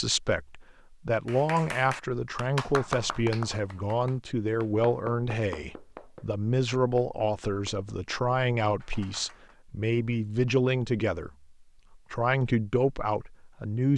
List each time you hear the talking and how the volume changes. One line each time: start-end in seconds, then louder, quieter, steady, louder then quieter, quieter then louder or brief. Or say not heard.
0.0-13.9 steady.